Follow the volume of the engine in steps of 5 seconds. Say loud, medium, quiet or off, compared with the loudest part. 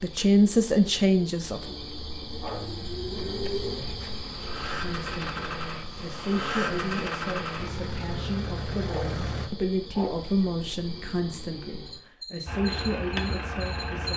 medium, loud, loud.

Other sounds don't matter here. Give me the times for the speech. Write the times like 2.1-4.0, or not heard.
0.0-1.8, 4.8-14.1.